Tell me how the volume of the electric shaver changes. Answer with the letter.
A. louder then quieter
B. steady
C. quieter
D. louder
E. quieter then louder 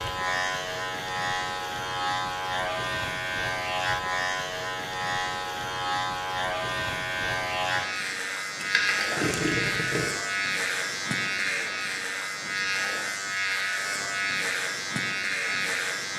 B.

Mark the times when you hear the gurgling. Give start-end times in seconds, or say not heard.
8.6-10.1.